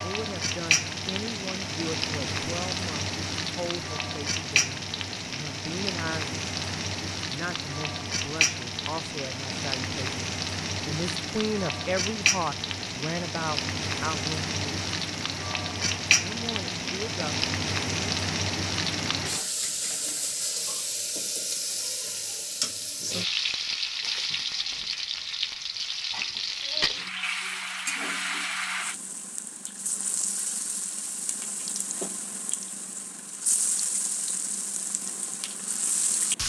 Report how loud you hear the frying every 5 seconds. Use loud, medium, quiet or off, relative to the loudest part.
loud, loud, loud, loud, loud, loud, medium, loud.